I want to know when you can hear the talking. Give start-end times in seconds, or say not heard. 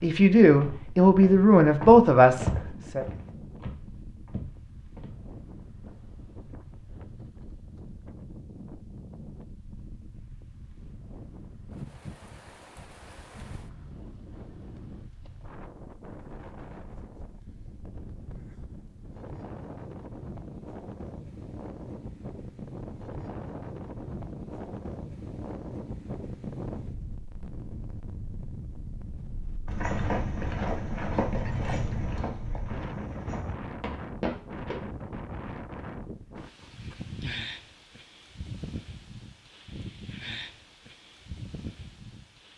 0.0-3.0.